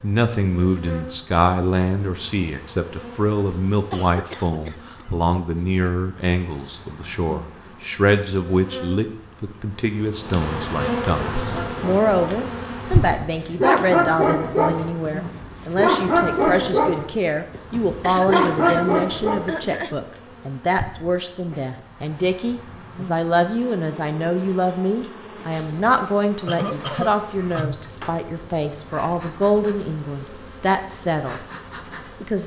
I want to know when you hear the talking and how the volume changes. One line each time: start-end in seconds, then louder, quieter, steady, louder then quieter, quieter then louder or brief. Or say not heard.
0.0-32.4 steady.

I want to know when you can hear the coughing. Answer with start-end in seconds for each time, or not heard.
3.9-5.1, 18.0-19.9, 26.4-27.8.